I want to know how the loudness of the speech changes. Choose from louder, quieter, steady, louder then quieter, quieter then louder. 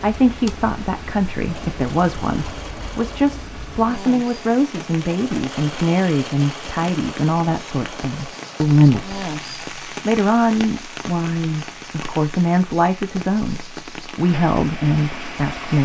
steady.